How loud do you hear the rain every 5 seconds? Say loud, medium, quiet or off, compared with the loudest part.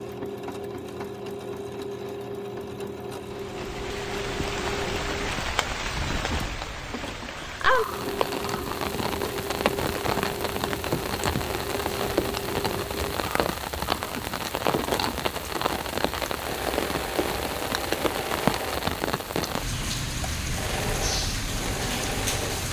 medium, loud, loud, loud, loud.